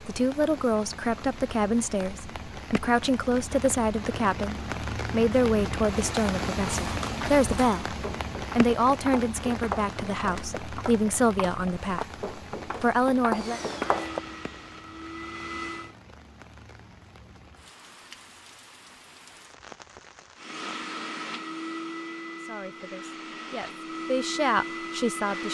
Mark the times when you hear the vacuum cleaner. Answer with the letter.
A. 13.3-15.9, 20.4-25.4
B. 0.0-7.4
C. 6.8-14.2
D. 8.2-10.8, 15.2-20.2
A.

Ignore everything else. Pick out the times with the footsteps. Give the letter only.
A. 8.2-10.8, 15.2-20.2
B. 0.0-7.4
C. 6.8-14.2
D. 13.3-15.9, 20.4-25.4
C.